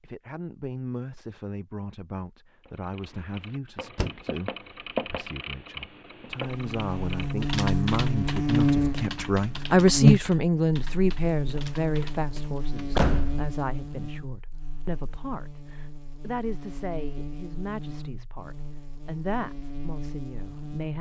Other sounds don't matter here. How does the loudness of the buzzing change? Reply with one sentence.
The volume of the buzzing goes down.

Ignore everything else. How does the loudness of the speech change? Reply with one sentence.
The loudness of the speech goes up, then down.